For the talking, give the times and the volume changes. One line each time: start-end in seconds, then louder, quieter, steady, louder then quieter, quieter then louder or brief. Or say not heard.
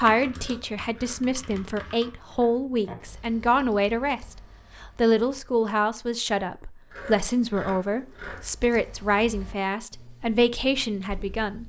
0.0-11.6 steady.